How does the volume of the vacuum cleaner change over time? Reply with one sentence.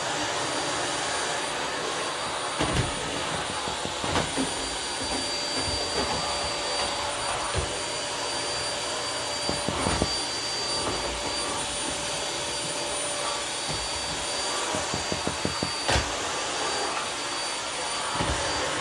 The loudness of the vacuum cleaner stays about the same.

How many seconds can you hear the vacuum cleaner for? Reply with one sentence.
You can hear the vacuum cleaner for 19 seconds altogether.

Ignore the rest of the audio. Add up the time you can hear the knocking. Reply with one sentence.
You can hear the knocking for 3 seconds altogether.